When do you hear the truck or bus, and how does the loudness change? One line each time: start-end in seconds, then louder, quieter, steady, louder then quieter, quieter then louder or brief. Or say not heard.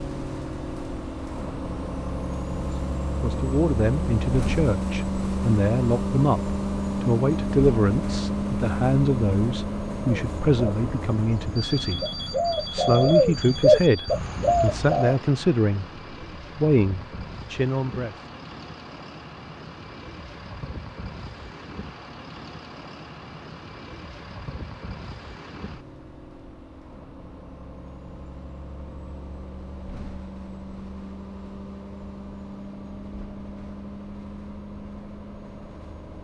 0.0-36.1 quieter.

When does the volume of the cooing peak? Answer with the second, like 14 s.
14 s.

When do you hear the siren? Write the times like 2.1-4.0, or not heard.
not heard.